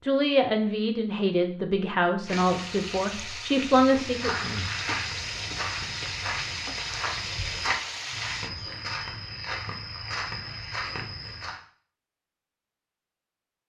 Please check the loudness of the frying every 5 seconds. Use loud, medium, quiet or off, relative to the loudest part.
loud, loud, off.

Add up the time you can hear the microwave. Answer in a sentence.
You can't hear the microwave here.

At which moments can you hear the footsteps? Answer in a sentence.
The footsteps can be heard from 4.0 to 11.6 s.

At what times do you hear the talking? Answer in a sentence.
The talking can be heard from 0.0 to 4.3 s.